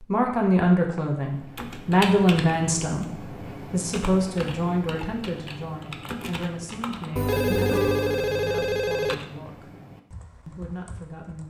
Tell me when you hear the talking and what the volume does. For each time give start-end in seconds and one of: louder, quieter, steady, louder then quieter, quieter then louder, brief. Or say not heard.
0.0-9.7 quieter
10.4-11.4 brief.